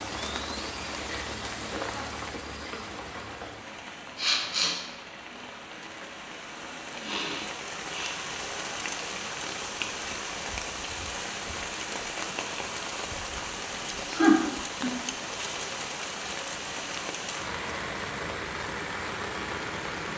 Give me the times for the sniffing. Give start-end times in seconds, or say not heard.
4.2-4.8, 7.0-8.2, 14.1-14.9.